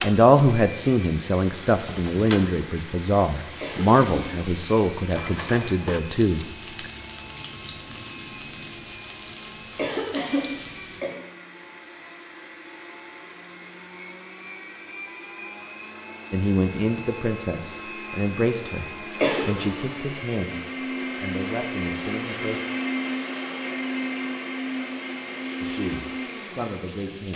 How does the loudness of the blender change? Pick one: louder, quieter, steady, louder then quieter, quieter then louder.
louder.